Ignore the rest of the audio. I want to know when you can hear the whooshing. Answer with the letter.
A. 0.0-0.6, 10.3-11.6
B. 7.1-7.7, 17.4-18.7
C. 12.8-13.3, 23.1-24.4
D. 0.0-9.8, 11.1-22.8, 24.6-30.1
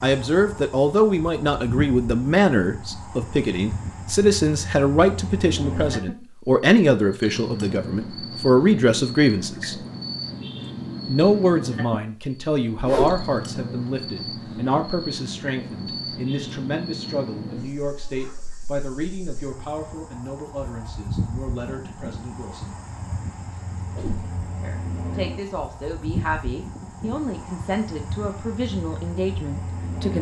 C.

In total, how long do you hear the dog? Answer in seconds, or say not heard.
not heard.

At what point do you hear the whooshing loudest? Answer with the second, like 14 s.
13 s.